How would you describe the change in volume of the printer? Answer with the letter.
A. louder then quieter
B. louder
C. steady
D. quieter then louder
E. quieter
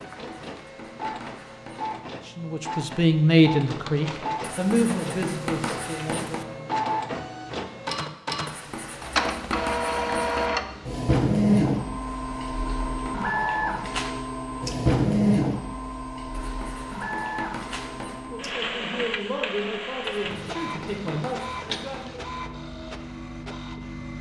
A.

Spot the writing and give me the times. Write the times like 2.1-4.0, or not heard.
0.0-2.0, 4.4-6.5, 8.4-10.5, 12.1-13.9, 16.3-18.3, 20.0-22.1.